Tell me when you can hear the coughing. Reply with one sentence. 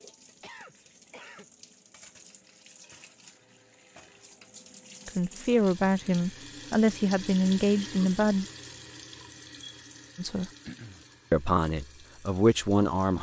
You can hear the coughing from 0.4 to 1.4 s and from 10.7 to 11.1 s.